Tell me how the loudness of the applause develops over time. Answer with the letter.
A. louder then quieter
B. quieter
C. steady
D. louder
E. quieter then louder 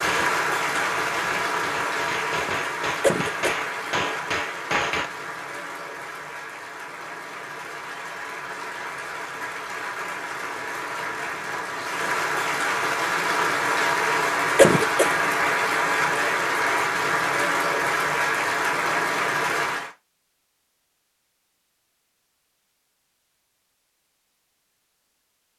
E.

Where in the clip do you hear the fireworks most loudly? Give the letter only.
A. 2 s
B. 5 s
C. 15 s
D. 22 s
B.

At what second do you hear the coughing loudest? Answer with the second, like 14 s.
15 s.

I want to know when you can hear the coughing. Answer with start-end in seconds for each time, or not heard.
3.0-3.5, 14.6-15.1.